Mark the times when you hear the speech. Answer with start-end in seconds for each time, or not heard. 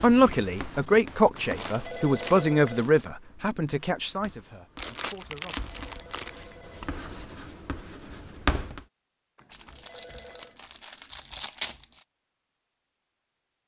0.0-5.5.